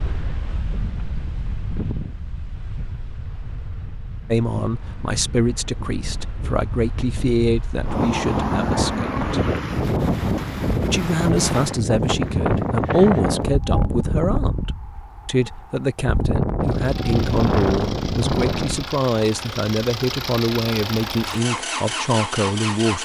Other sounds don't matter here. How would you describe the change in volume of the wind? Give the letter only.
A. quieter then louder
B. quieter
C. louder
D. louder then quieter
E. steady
C.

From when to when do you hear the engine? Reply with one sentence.
The engine can be heard from 16.6 to 23.0 s.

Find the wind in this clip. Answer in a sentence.
You can hear the wind from 0.0 to 18.9 s.